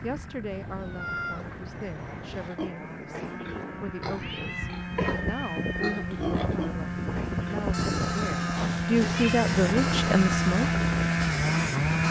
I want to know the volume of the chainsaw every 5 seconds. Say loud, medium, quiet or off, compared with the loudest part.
quiet, medium, loud.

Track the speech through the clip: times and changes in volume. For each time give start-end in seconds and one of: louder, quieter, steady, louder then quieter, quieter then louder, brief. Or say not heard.
0.0-10.8 louder.